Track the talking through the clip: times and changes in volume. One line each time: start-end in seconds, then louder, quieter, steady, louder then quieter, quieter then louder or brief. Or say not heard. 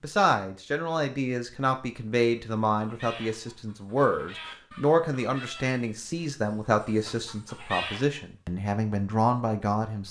0.0-10.0 steady.